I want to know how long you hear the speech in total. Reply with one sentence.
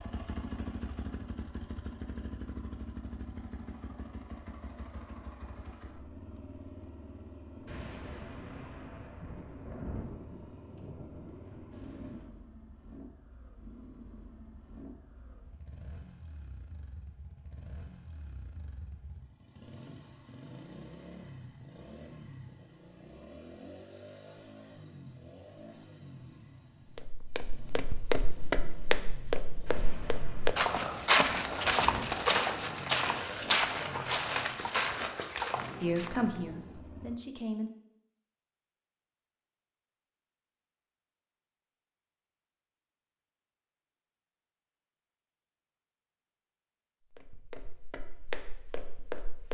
You can hear the speech for 2 seconds altogether.